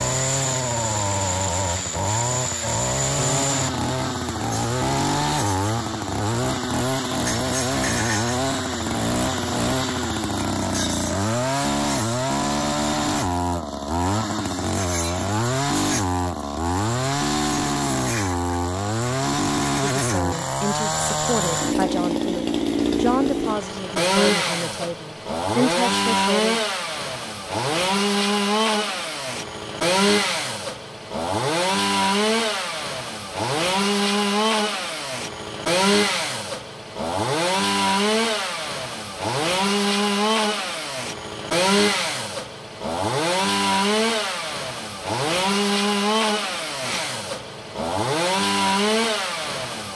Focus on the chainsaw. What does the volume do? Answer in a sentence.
The volume of the chainsaw stays about the same.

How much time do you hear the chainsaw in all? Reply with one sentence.
The chainsaw can be heard for 50 seconds in total.